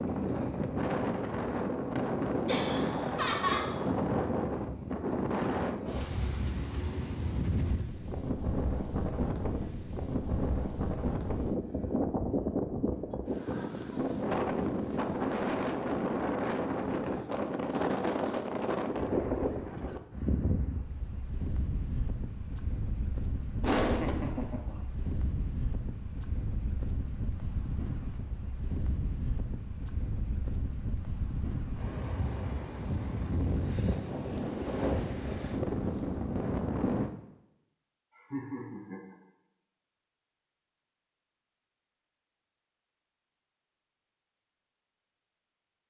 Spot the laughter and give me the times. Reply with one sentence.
You can hear the laughter from 2.5 to 3.6 s, from 23.6 to 24.8 s and from 38.1 to 39.1 s.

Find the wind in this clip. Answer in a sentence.
The wind can be heard from 0.0 to 37.1 s.